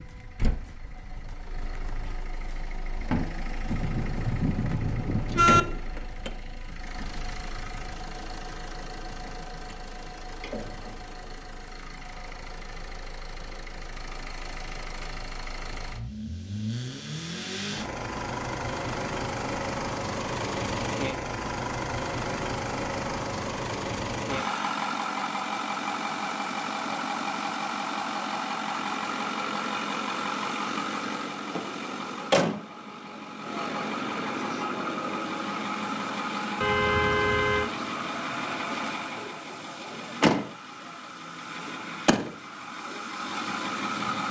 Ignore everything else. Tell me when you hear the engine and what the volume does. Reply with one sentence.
The engine can be heard from 0.0 to 44.2 s, getting louder.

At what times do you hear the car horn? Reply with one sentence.
You can hear the car horn from 3.6 to 5.6 s and from 36.6 to 37.7 s.